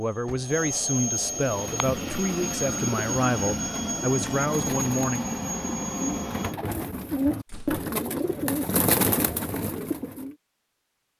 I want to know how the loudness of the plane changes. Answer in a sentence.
The loudness of the plane stays about the same.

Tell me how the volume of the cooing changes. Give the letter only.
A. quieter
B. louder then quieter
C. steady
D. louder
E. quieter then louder
D.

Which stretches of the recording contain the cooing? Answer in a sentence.
You can hear the cooing from 1.2 to 10.3 s.